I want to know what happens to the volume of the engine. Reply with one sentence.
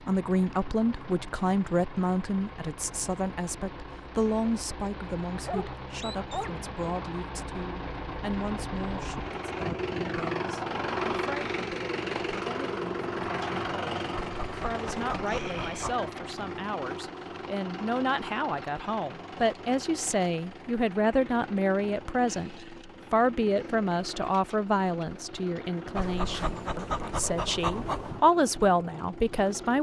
The loudness of the engine goes up, then down.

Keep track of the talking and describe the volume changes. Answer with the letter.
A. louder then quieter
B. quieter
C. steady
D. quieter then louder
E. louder
D.